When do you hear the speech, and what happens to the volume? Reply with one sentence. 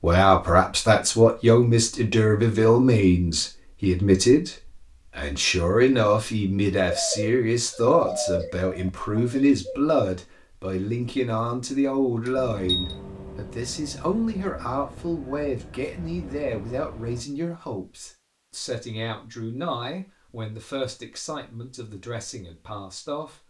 The speech can be heard from 0.0 to 23.4 s, getting quieter.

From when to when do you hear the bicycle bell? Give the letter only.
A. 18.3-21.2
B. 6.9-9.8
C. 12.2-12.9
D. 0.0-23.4
C.